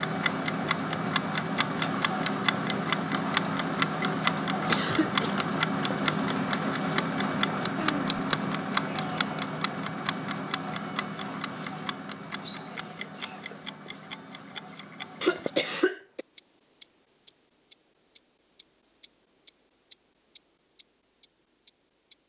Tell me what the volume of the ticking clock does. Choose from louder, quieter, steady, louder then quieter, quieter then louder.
quieter.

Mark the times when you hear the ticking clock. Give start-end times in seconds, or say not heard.
0.0-22.1.